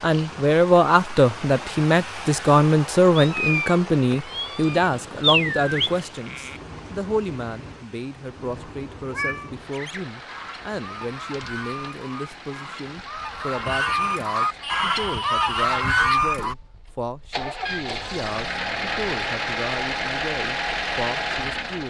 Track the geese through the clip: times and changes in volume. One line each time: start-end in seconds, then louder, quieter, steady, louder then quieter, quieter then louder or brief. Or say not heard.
9.7-16.6 louder.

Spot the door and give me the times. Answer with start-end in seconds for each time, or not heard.
not heard.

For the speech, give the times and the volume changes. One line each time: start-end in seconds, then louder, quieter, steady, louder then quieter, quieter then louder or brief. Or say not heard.
0.0-21.8 quieter.